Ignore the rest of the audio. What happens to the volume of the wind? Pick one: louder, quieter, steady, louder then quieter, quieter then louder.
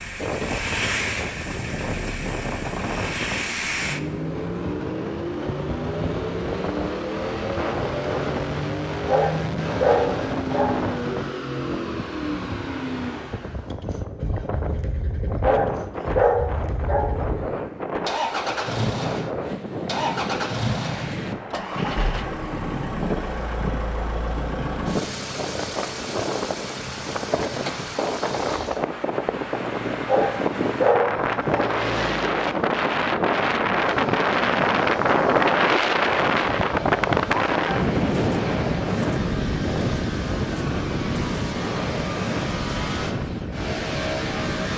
louder.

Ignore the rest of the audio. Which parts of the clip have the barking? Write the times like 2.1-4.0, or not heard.
9.1-10.8, 15.4-17.2, 30.1-31.7.